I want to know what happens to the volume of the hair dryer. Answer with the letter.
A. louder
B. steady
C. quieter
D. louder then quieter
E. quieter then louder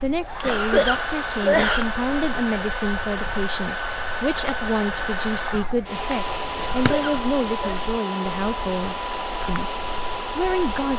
B.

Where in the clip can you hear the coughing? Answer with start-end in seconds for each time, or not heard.
0.4-1.9, 6.5-7.8.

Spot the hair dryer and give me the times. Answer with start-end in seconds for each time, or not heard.
0.0-10.9.